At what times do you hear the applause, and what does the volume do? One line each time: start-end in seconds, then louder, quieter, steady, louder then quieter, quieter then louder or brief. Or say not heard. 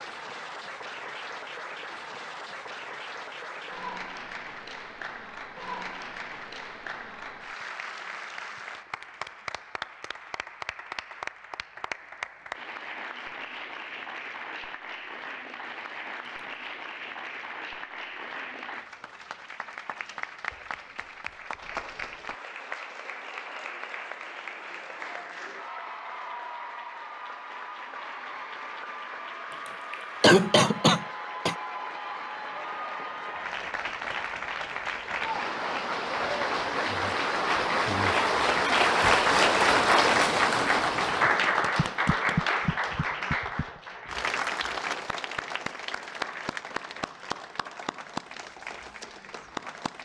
0.0-50.0 louder.